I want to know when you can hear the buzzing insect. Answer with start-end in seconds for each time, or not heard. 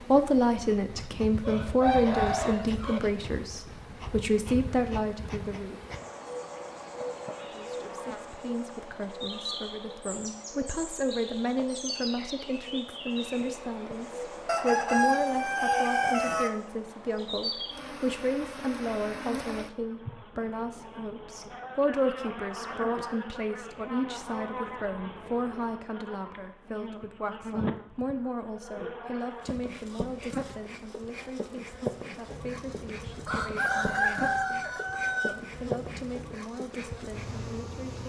0.0-38.0.